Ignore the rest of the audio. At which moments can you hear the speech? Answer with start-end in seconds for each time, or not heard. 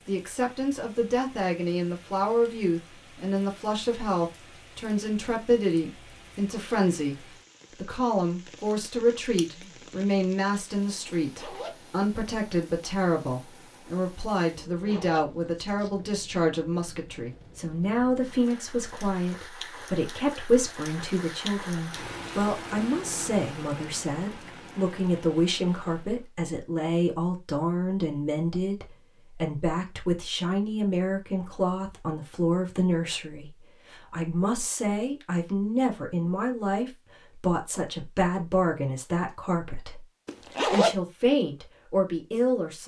0.1-42.8.